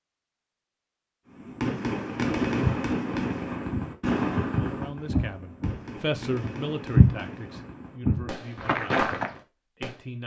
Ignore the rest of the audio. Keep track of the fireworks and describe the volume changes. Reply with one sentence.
The volume of the fireworks goes down.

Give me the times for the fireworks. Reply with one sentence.
You can hear the fireworks from 1.4 to 10.0 s.